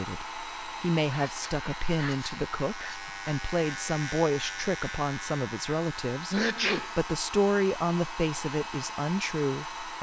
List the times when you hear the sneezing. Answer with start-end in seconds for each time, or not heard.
1.1-3.1, 6.3-7.0.